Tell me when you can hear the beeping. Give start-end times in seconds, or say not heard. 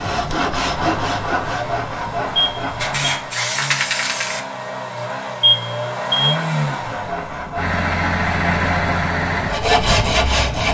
2.4-3.2, 5.4-6.3.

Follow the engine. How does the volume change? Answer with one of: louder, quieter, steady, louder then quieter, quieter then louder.
louder.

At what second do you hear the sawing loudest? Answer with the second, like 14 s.
10 s.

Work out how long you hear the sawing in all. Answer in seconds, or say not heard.
7 s.